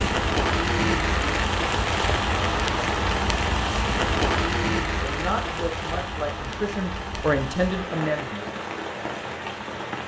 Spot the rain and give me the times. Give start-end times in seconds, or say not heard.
0.0-10.0.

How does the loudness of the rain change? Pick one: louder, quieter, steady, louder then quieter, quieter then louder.
quieter.